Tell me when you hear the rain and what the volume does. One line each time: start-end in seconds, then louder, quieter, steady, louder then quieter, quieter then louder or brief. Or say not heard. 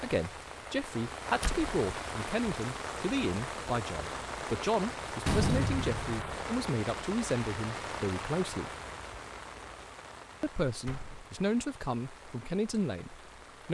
0.0-13.6 quieter.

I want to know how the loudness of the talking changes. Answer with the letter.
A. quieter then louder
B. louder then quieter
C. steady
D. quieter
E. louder
C.